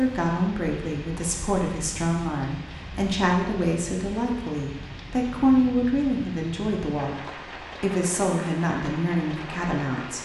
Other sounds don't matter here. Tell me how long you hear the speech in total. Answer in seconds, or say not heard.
10 s.